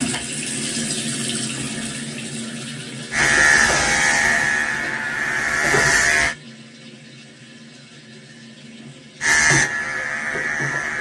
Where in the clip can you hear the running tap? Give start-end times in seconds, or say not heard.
0.0-10.9.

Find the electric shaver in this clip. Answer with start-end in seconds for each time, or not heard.
3.1-6.3, 9.2-10.9.